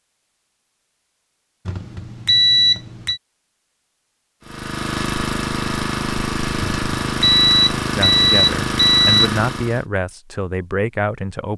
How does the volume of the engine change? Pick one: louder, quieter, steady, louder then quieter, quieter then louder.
steady.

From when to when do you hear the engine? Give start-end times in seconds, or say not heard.
4.4-9.8.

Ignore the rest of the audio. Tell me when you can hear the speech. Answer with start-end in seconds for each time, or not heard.
8.0-11.5.